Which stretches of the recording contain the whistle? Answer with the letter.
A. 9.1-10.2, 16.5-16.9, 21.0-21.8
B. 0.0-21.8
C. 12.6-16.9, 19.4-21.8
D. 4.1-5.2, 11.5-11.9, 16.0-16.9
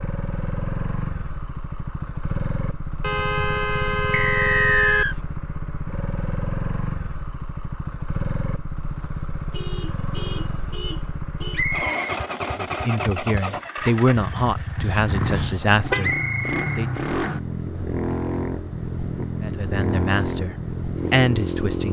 D.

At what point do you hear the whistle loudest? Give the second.
5 s.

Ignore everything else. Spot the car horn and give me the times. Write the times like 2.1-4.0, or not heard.
3.0-5.0, 9.5-11.7, 14.8-16.1.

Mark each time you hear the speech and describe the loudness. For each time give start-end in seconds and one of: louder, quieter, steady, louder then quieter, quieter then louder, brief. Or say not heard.
12.6-16.9 louder then quieter
19.4-21.8 brief.